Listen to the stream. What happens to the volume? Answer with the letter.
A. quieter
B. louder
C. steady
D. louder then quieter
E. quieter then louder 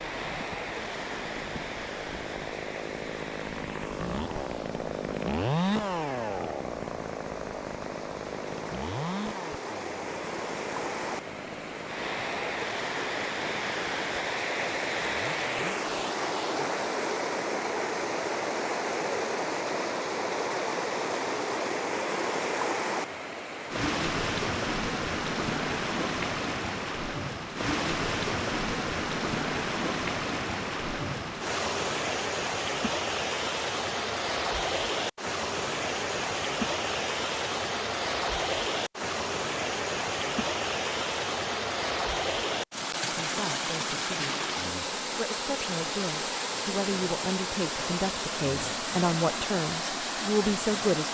B.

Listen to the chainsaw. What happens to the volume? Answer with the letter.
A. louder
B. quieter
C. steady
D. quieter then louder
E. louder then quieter
E.